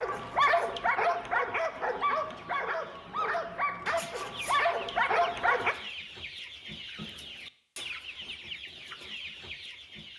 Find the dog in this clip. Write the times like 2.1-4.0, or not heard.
0.0-5.8.